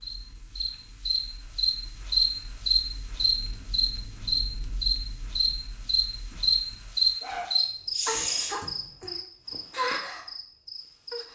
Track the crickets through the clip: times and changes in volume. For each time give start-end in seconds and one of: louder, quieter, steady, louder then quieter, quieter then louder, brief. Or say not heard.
0.0-11.3 quieter.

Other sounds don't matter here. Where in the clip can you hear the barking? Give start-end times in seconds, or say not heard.
6.3-9.1.